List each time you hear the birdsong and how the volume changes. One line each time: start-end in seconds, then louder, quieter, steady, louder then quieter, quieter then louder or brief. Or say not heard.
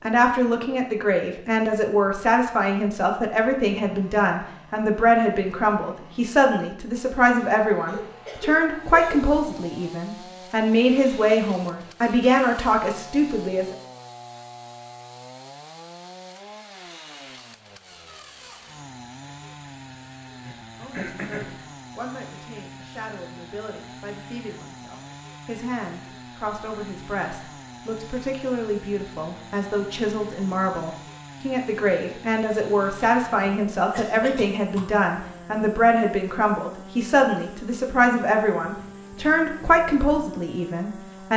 not heard.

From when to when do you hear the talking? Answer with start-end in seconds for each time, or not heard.
0.0-13.8, 20.8-41.3.